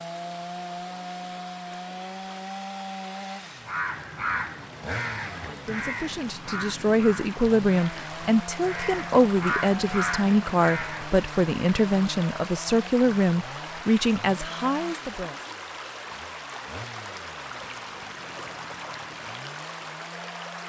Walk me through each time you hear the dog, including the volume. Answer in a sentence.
You can't hear the dog here.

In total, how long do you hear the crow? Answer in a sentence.
The crow can be heard for 8 seconds in total.